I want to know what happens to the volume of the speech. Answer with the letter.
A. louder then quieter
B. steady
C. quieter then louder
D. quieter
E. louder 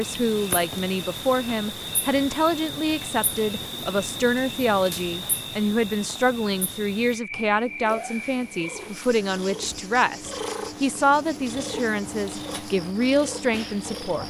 B.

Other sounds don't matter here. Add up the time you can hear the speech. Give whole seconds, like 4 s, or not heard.
14 s.